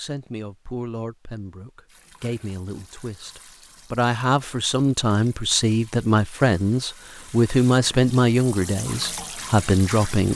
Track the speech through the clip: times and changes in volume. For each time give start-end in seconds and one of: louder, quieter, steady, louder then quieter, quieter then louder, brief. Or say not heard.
0.0-10.3 louder.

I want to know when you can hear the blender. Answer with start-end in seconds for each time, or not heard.
not heard.